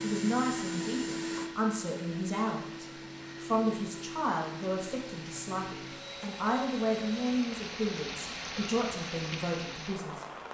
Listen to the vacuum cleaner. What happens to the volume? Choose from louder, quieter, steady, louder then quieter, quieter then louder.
quieter.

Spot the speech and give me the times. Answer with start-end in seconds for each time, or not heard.
0.0-10.2.